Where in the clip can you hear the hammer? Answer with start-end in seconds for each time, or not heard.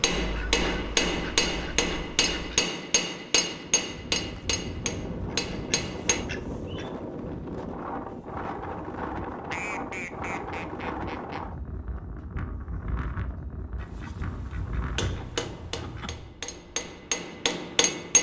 0.0-6.2, 14.9-18.1.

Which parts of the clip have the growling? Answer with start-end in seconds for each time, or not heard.
not heard.